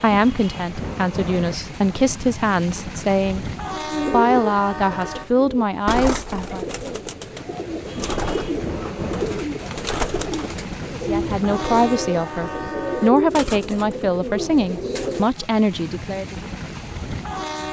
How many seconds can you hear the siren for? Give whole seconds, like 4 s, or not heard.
not heard.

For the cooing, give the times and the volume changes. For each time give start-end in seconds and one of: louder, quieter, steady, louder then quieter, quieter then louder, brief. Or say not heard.
3.8-15.3 steady.